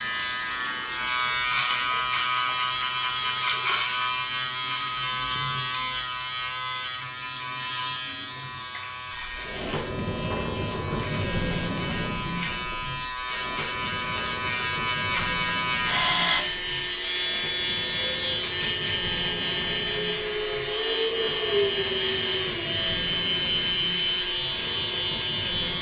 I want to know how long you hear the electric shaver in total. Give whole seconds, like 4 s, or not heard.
26 s.